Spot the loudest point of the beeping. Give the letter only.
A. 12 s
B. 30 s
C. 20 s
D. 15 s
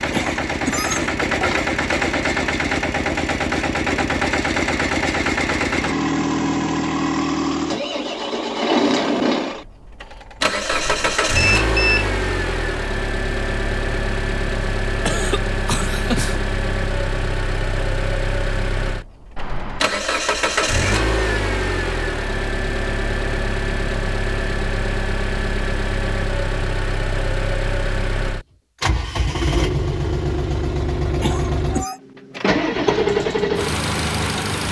A.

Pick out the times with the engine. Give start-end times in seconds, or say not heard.
0.0-34.6.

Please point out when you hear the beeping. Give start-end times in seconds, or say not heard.
10.7-12.1, 19.4-20.0.